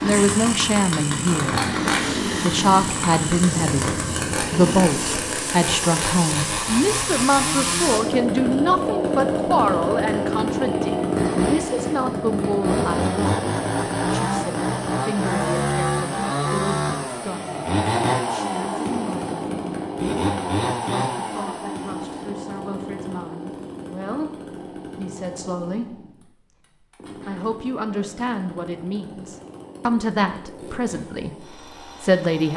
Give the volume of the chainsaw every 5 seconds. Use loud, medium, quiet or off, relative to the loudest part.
loud, loud, loud, loud, medium, quiet, quiet.